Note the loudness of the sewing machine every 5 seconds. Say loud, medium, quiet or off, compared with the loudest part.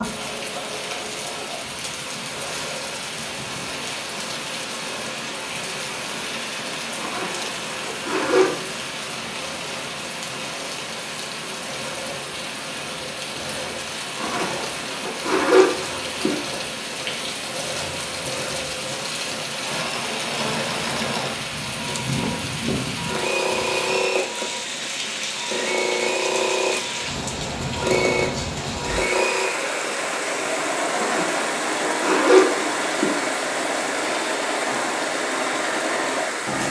quiet, quiet, quiet, medium, loud, loud, loud, loud.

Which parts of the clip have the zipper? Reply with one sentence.
You can hear the zipper from 7.0 to 8.5 s, from 14.2 to 16.4 s and from 30.9 to 33.4 s.